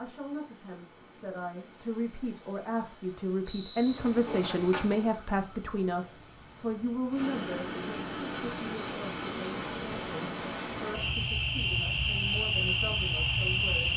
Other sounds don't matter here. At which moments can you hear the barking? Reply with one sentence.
The barking can't be heard in this clip.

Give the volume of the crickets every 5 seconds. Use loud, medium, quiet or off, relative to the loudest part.
loud, quiet, loud.